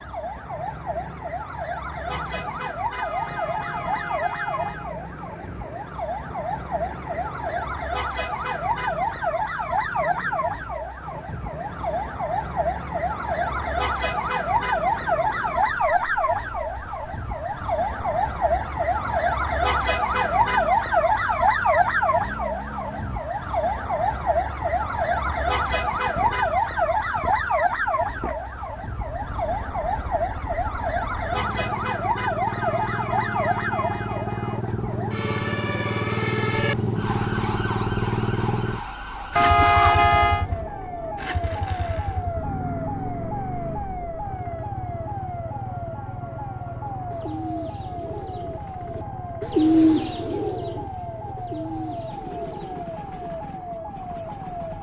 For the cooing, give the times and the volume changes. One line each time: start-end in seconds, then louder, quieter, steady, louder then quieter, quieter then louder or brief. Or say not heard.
46.9-53.8 louder then quieter.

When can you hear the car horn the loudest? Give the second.
40 s.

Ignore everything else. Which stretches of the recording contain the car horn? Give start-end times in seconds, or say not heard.
3.0-5.0, 32.5-34.6, 39.4-40.5.